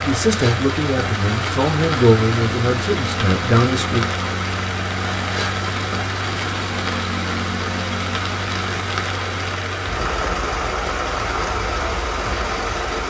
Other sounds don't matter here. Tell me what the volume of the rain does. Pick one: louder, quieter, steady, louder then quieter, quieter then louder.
steady.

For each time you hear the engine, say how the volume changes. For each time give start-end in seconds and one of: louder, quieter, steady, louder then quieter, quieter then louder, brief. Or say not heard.
0.1-13.0 steady.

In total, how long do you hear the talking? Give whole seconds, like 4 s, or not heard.
4 s.